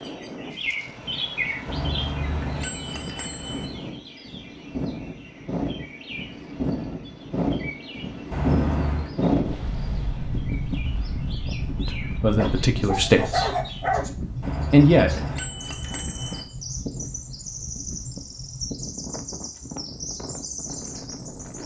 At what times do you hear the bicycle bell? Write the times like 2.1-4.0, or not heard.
1.6-3.7, 8.3-9.1, 14.4-16.4.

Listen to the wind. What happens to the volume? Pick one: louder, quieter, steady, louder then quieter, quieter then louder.
louder then quieter.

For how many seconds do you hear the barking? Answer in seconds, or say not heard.
2 s.